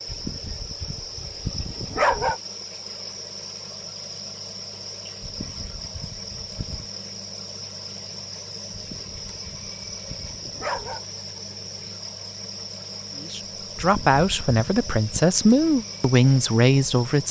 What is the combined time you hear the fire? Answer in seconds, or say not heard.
not heard.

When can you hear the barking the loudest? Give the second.
2 s.